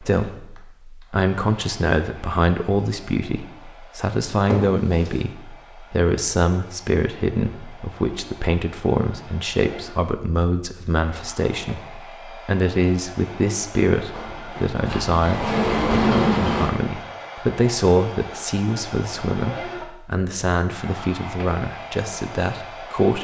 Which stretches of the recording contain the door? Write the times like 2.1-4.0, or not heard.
4.5-5.2, 14.1-16.7.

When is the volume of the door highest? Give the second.
16 s.